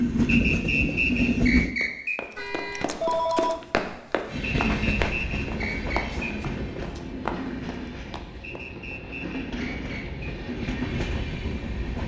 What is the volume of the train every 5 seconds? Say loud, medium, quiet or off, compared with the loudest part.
loud, medium, medium.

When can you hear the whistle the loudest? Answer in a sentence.
The volume of the whistle peaks at 1 second.